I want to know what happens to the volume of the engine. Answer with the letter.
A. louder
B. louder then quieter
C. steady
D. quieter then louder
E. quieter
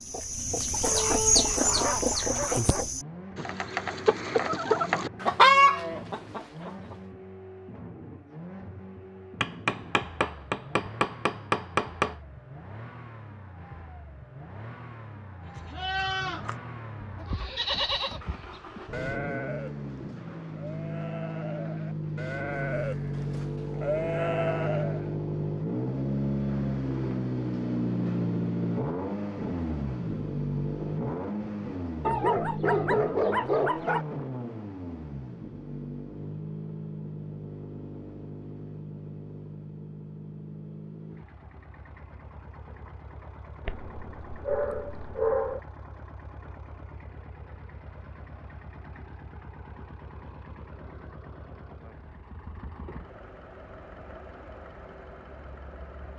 B.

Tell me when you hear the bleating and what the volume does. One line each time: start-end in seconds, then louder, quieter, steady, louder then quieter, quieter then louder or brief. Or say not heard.
15.6-25.1 quieter then louder.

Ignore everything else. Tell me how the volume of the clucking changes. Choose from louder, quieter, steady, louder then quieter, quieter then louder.
quieter then louder.